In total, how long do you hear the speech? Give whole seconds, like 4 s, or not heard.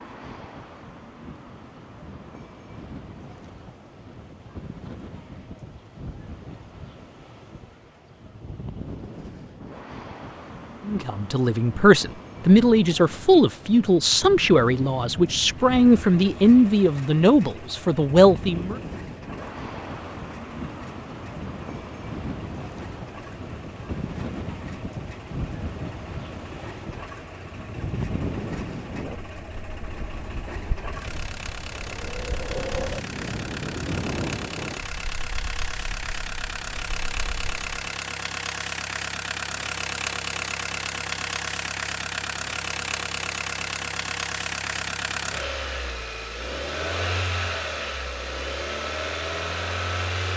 8 s.